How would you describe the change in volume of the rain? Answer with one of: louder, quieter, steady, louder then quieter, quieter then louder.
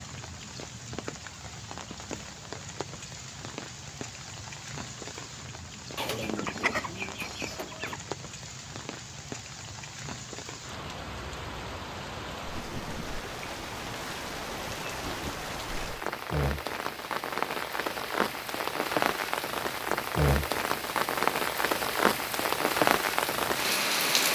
louder.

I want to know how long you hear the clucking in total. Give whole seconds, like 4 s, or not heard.
2 s.